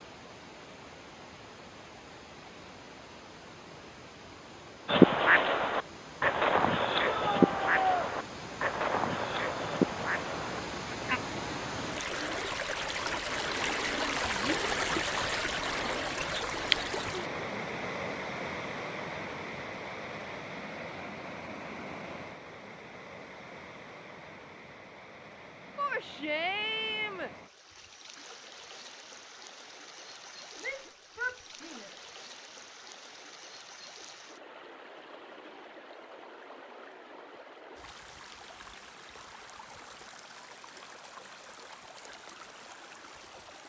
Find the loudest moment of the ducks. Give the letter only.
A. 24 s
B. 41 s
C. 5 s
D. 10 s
C.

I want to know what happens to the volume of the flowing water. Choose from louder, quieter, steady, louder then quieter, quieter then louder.
louder then quieter.